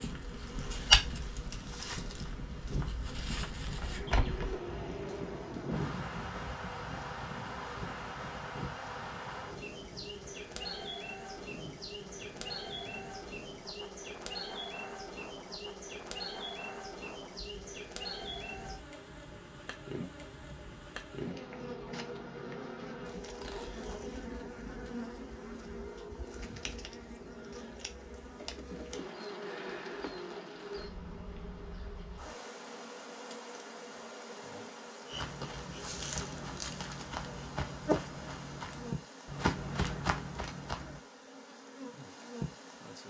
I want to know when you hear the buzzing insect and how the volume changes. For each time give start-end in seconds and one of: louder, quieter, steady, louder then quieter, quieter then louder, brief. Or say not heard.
0.0-43.0 steady.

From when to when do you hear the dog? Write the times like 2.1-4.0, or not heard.
not heard.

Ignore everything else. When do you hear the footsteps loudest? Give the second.
1 s.